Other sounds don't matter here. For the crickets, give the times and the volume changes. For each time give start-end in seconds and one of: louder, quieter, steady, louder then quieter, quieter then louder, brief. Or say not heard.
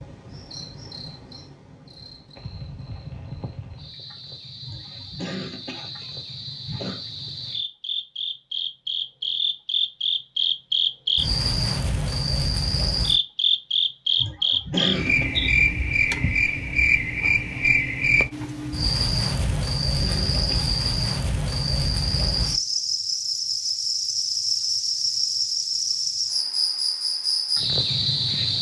0.0-28.5 louder.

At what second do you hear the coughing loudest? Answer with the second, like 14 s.
15 s.